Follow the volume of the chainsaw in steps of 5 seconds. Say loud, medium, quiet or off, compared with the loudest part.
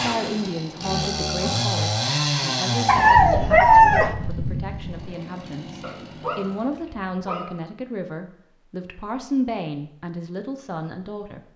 loud, quiet, off.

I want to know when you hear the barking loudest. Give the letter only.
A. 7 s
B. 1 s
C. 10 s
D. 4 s
D.